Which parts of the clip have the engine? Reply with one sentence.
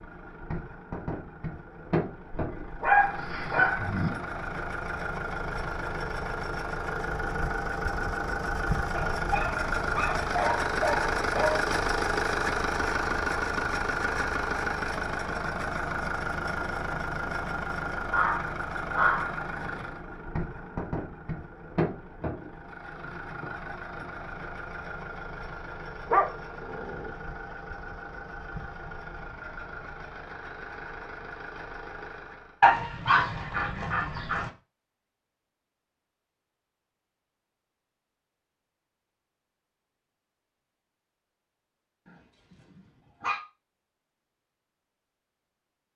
You can hear the engine from 0.0 to 32.6 s.